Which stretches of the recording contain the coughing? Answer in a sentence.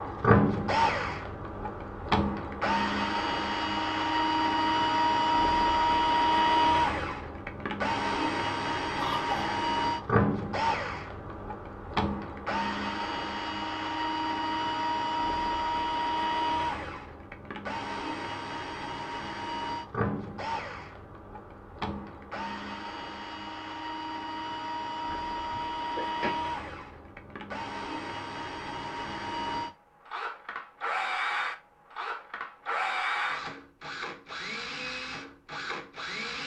You can hear the coughing from 9.0 to 9.6 s and from 25.1 to 26.3 s.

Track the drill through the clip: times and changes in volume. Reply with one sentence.
The drill can be heard from 0.0 to 36.4 s, getting quieter.